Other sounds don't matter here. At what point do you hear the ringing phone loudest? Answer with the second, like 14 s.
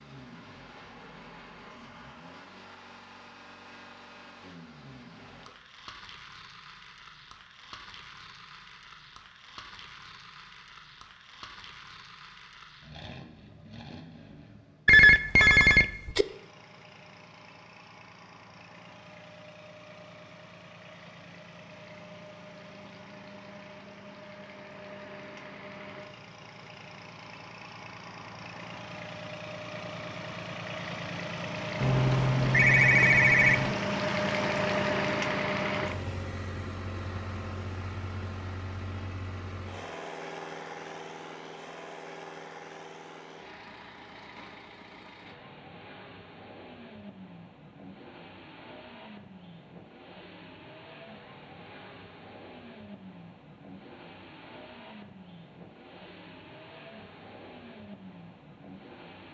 15 s.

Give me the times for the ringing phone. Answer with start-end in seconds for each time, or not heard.
14.8-16.2, 31.8-33.8.